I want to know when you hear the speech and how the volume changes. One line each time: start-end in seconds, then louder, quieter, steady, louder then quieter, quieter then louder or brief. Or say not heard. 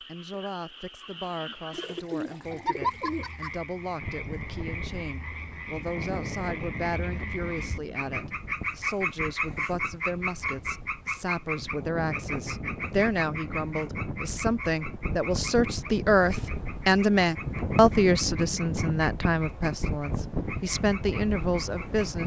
0.0-22.2 louder.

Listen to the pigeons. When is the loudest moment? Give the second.
3 s.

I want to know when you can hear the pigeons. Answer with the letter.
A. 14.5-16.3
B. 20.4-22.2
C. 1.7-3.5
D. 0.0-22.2
C.